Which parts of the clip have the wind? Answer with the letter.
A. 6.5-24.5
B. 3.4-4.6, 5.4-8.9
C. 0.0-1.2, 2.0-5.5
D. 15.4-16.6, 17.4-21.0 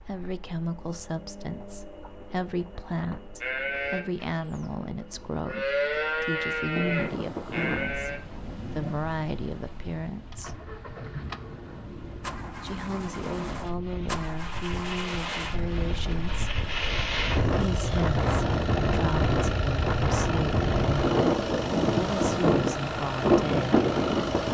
A.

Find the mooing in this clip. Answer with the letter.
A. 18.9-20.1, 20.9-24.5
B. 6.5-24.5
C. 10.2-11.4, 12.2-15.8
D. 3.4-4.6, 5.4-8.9
D.